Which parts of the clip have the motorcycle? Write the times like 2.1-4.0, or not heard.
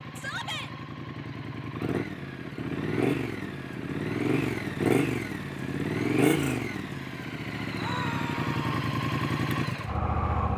0.0-10.5.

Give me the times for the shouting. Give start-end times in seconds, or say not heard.
0.1-0.7, 7.8-8.7.